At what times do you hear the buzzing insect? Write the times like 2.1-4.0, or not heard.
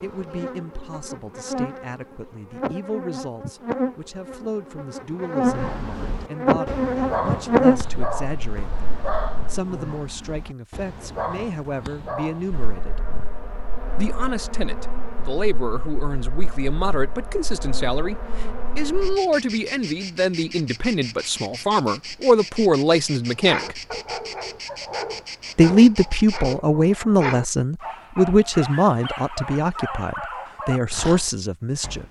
0.0-9.6, 12.5-26.6.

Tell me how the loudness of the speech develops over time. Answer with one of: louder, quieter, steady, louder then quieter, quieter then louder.
louder.